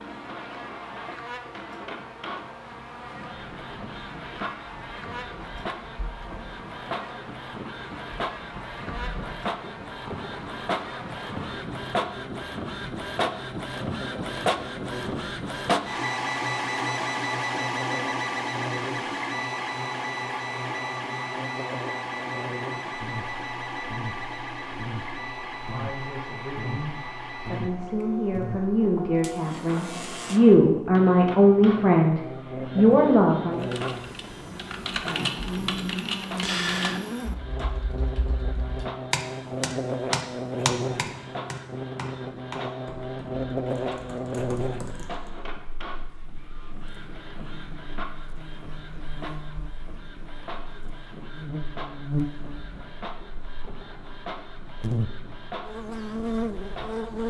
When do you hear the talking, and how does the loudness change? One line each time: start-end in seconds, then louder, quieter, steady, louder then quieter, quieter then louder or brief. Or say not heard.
25.6-33.7 louder.